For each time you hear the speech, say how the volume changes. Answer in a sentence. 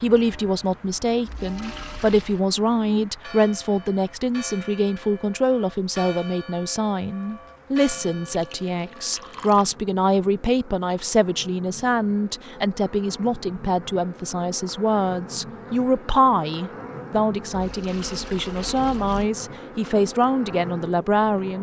You can hear the speech from 0.0 to 21.5 s, at a steady volume.